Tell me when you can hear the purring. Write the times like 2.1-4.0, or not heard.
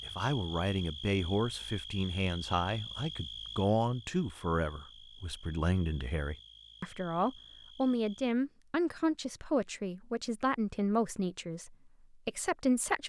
not heard.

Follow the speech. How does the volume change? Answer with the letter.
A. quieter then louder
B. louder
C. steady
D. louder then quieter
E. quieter
C.